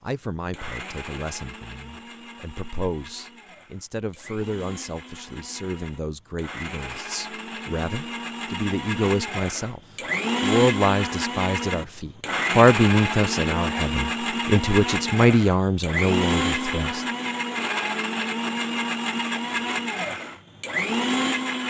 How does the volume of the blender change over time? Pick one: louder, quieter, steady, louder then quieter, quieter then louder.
louder.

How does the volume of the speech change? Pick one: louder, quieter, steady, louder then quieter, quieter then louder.
louder.